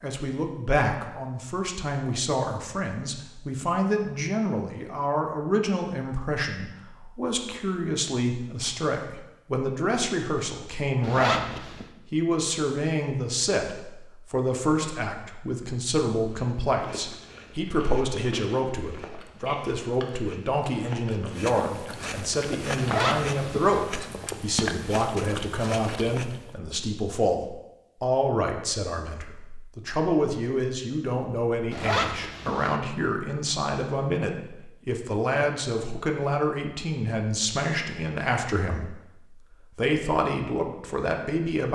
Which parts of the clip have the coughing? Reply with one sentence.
You can't hear the coughing here.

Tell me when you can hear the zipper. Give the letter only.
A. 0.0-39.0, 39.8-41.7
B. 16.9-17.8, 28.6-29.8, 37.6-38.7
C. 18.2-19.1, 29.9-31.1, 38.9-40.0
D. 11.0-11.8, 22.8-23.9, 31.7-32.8
D.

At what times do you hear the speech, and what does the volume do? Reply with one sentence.
You can hear the speech from 0.0 to 39.0 s, at a steady volume; and briefly from 39.8 to 41.7 s.